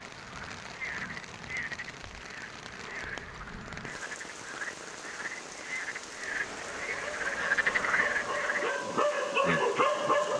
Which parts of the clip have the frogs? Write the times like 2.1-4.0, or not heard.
0.0-8.8.